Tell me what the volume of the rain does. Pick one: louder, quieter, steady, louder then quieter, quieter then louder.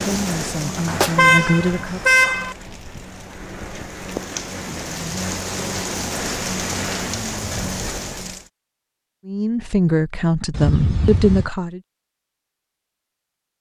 quieter then louder.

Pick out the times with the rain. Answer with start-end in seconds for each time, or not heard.
0.0-8.5.